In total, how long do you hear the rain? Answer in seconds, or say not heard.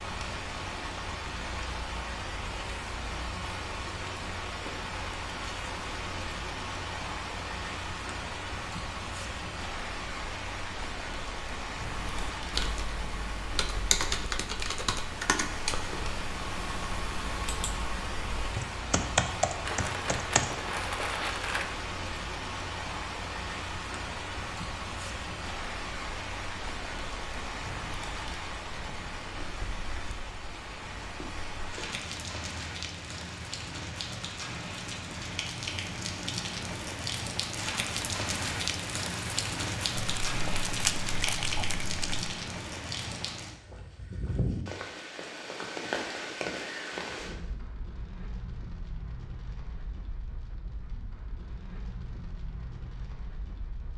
54 s.